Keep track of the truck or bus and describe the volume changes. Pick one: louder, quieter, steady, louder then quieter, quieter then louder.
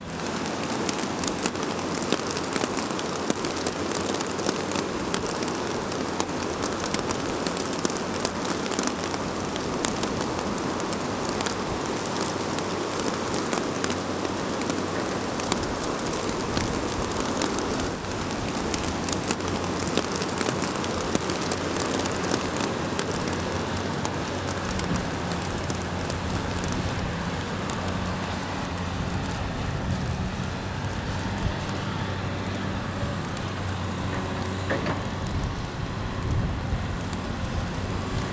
louder.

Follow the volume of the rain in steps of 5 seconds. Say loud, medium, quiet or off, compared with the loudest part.
loud, loud, loud, loud, loud, medium, quiet, quiet.